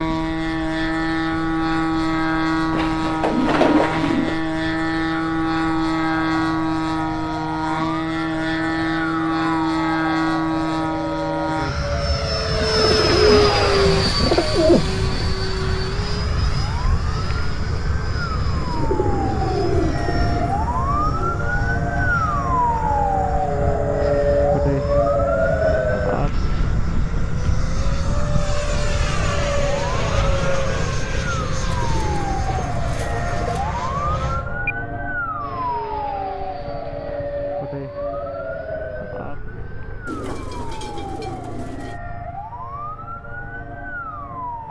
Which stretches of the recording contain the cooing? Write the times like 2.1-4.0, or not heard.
2.7-4.3, 12.5-15.3, 18.6-21.4, 31.6-33.6, 40.0-42.0.